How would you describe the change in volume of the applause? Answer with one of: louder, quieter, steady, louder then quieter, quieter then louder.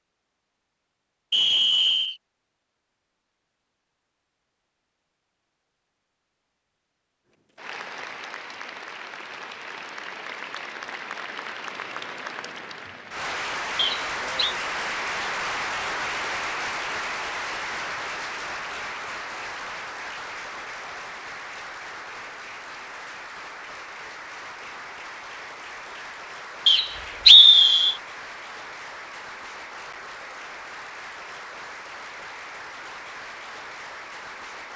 louder then quieter.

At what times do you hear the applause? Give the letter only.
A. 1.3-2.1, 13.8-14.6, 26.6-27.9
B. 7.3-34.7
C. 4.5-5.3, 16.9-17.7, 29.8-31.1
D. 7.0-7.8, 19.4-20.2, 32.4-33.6
B.